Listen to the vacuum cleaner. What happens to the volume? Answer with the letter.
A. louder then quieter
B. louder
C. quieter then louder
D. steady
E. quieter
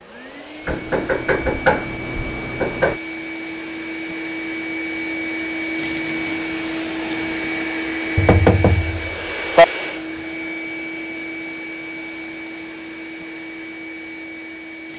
A.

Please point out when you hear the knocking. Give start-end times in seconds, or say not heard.
0.7-3.0, 8.2-9.7.